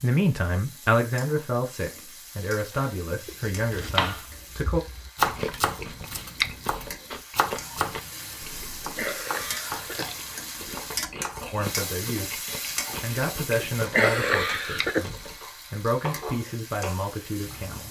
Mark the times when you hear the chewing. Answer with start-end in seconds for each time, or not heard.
5.2-15.4.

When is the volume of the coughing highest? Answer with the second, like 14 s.
14 s.